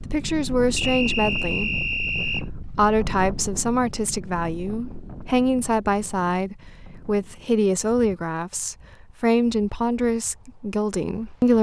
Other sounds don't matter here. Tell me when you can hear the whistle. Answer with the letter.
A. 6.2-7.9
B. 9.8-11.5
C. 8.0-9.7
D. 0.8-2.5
D.